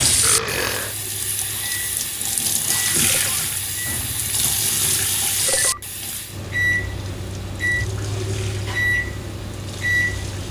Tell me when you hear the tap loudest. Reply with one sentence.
The loudest moment of the tap is at 3 seconds.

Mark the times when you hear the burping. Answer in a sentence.
You can hear the burping from 0.2 to 0.9 s.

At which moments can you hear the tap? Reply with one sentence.
The tap can be heard from 0.0 to 10.4 s.